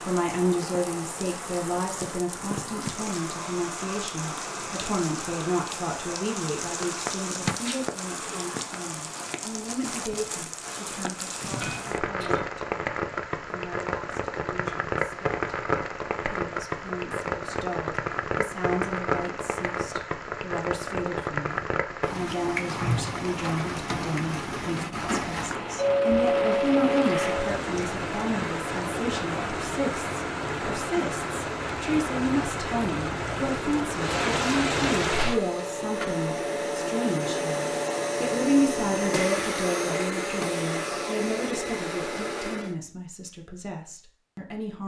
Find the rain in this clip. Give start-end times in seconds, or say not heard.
0.0-35.4.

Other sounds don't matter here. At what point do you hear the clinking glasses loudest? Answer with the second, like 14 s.
26 s.